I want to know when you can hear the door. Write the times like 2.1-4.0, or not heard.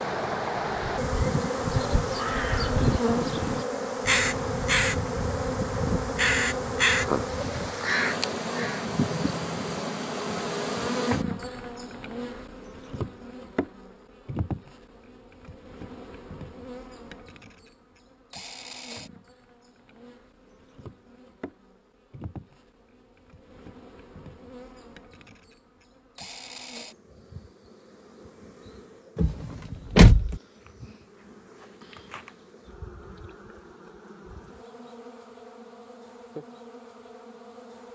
29.1-30.4.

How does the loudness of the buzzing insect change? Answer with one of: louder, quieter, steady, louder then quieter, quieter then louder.
quieter.